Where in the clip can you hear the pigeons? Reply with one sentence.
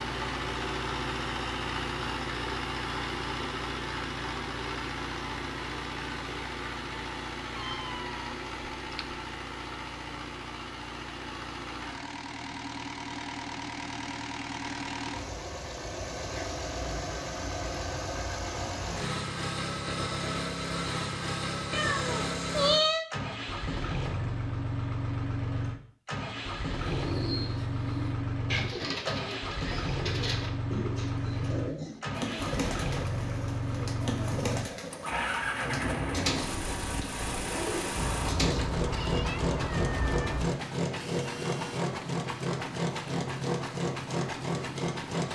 The pigeons can be heard from 26.8 to 38.7 s.